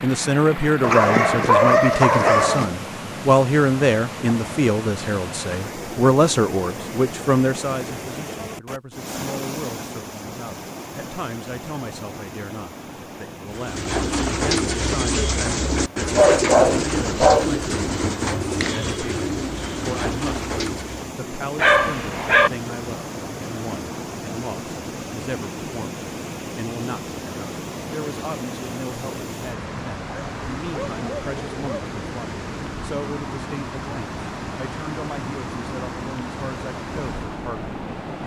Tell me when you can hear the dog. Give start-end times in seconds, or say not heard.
0.8-2.7, 15.7-17.4, 21.6-22.5, 30.1-31.9.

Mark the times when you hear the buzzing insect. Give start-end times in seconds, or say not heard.
not heard.